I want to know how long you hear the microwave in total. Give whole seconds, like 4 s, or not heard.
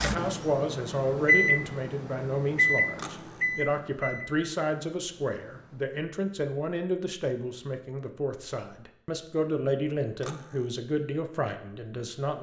6 s.